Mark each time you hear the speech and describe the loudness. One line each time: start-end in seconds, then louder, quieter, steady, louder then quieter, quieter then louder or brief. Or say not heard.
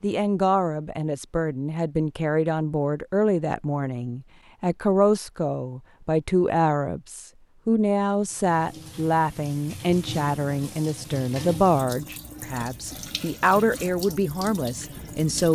0.0-15.5 steady.